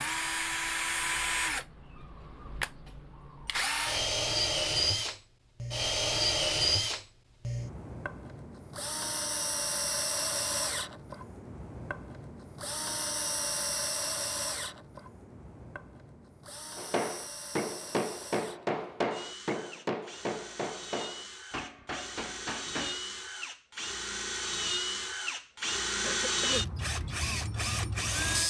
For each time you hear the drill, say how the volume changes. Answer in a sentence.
You can hear the drill from 0.0 to 28.4 s, getting quieter then louder.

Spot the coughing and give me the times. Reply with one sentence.
The coughing can be heard from 26.0 to 26.6 s.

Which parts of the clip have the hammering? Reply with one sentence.
The hammering can be heard from 16.8 to 23.0 s.